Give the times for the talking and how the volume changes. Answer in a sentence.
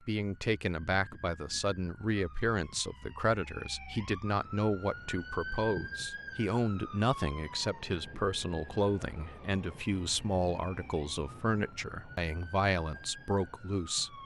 You can hear the talking from 0.1 to 14.2 s, at a steady volume.